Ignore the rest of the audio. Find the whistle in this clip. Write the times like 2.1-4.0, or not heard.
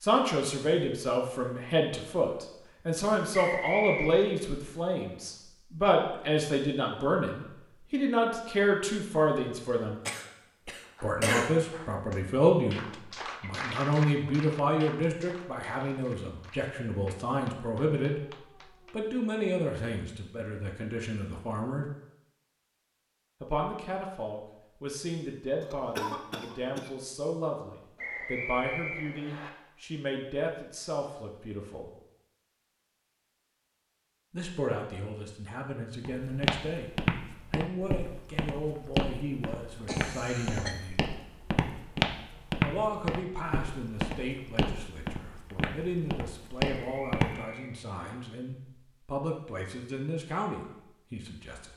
3.3-4.1, 27.9-29.5, 46.8-48.0.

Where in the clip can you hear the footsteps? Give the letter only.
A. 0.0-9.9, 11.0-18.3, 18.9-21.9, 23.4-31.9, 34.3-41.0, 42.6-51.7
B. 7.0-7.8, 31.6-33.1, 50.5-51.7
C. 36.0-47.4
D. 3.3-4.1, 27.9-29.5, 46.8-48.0
C.